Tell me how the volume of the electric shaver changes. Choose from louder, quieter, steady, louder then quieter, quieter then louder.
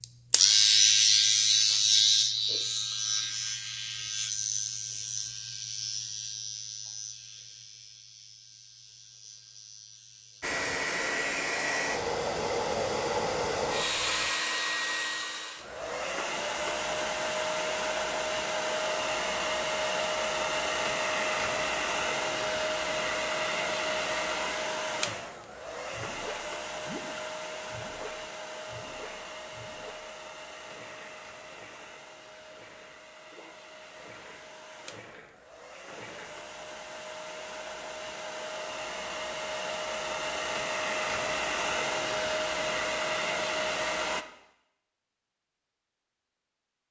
quieter.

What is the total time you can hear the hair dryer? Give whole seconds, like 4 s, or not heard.
34 s.